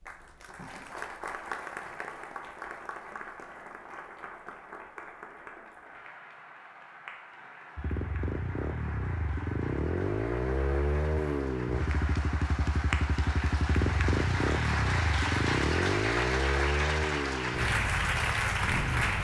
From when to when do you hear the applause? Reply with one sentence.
You can hear the applause from 0.0 to 19.2 s.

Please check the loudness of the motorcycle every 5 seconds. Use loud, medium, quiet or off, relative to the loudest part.
off, loud, loud, loud.